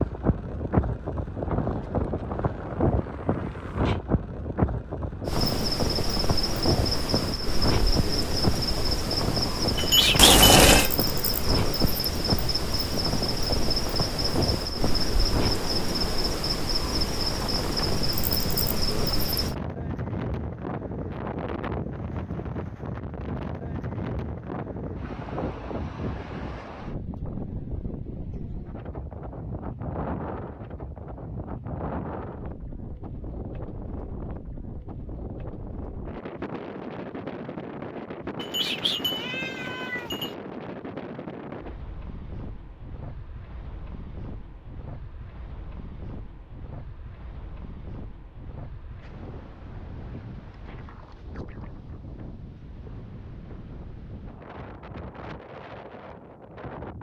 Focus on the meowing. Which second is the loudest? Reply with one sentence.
The loudest moment of the meowing is at 10 seconds.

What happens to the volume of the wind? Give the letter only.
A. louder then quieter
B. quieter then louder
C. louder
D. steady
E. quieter
E.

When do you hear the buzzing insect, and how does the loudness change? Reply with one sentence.
The buzzing insect can be heard from 5.2 to 19.6 s, at a steady volume.